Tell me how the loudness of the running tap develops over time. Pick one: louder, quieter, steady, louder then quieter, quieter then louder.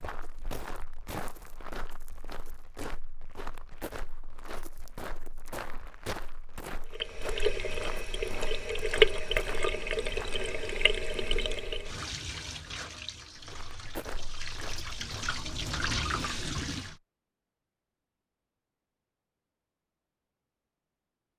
quieter then louder.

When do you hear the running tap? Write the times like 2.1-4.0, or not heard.
6.9-16.9.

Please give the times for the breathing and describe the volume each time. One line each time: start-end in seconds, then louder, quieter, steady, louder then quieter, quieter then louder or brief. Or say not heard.
not heard.